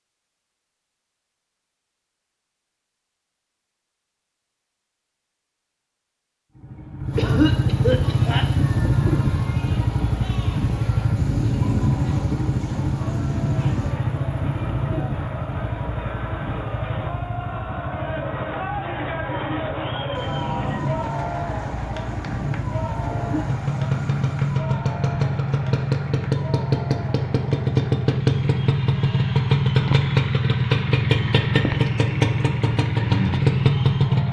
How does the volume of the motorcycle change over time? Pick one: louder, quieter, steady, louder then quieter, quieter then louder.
quieter then louder.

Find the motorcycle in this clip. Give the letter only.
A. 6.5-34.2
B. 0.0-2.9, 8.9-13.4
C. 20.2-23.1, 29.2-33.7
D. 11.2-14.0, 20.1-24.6
A.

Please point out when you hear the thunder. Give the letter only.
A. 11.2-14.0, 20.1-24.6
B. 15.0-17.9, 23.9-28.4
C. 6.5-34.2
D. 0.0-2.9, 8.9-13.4
A.